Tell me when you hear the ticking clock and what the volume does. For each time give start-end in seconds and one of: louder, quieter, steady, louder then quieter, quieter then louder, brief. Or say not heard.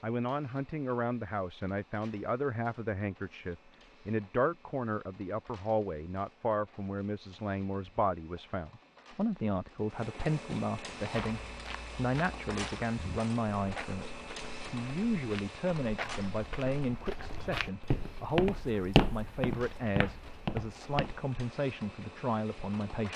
not heard.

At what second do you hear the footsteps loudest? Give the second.
19 s.